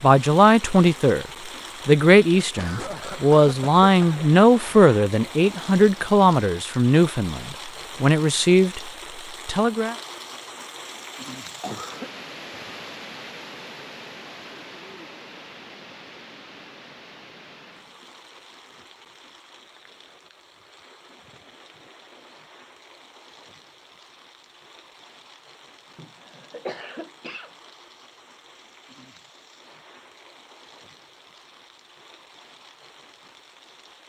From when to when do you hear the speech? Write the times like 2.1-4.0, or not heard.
0.0-9.9.